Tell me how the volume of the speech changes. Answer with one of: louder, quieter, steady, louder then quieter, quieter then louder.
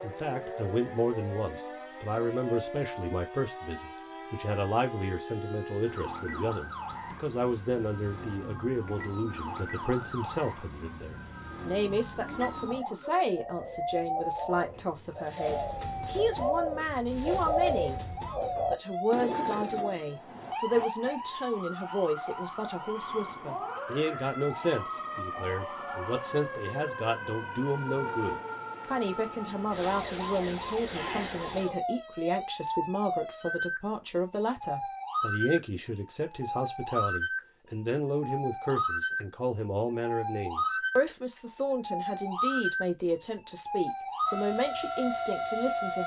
steady.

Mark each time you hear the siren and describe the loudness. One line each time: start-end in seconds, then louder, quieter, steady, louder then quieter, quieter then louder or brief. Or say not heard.
0.0-46.0 louder.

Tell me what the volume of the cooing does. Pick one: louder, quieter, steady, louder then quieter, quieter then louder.
louder.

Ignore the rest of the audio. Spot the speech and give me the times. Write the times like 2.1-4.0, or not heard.
0.0-46.0.